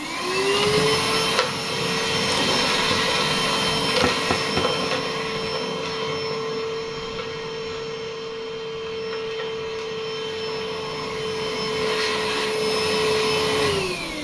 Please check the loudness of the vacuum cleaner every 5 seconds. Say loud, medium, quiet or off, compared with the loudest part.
loud, medium, loud.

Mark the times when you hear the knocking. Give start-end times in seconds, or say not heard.
4.0-4.8.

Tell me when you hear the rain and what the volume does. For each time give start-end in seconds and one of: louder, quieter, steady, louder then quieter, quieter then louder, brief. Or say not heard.
not heard.